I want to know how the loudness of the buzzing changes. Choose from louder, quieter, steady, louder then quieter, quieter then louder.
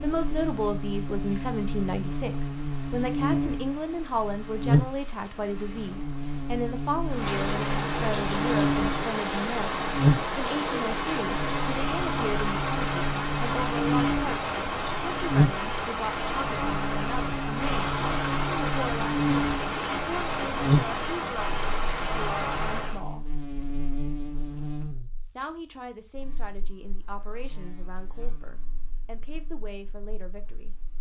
quieter.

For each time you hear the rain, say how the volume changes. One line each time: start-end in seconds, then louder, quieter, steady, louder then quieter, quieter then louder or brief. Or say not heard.
0.0-23.0 louder.